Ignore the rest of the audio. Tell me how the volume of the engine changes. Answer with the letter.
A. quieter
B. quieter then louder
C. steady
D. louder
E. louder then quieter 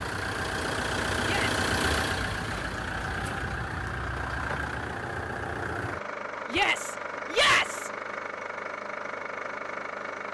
A.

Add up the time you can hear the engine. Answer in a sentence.
The engine can be heard for 10 seconds in total.